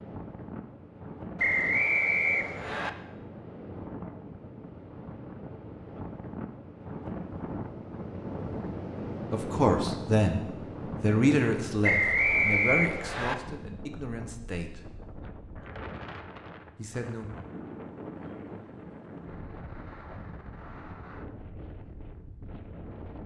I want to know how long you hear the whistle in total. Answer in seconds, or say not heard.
3 s.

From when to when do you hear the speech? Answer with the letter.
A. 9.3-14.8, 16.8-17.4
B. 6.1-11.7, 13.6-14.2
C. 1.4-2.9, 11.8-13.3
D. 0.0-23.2
A.